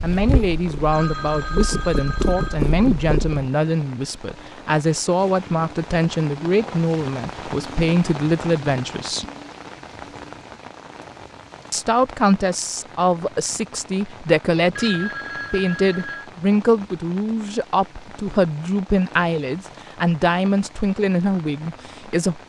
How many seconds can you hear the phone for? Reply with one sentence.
The phone can be heard for 3 seconds in total.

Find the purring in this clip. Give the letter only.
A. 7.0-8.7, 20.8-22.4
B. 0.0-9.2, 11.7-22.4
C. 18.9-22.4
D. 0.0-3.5
D.